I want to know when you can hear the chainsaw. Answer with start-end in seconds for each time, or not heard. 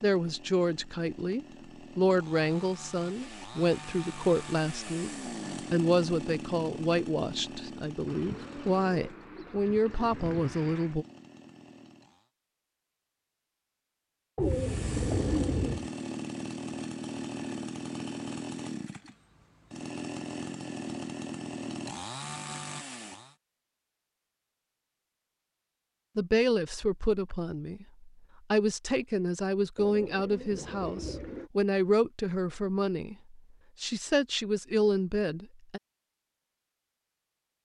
0.0-12.3, 14.4-23.4.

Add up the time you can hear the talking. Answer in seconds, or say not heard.
20 s.